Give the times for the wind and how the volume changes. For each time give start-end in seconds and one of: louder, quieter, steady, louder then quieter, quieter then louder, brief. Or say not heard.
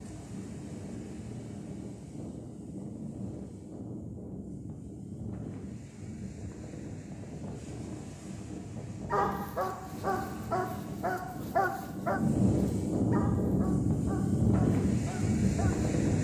0.0-16.1 louder.